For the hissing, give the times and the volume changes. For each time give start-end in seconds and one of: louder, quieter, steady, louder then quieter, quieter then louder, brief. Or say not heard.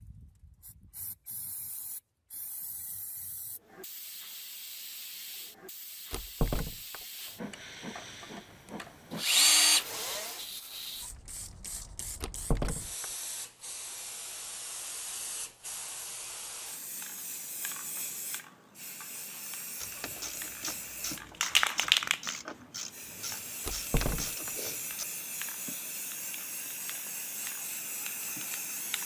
0.0-29.0 louder then quieter.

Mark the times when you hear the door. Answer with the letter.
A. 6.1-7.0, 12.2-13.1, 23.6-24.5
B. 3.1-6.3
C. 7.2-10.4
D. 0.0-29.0
A.